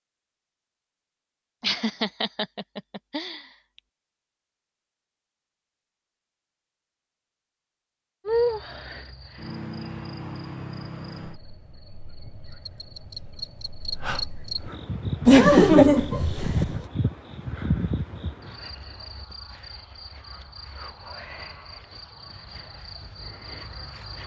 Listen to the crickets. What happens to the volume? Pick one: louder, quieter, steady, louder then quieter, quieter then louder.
louder then quieter.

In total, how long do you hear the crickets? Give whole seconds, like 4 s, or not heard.
16 s.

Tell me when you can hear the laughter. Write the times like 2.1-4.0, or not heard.
1.6-3.5, 15.2-16.7.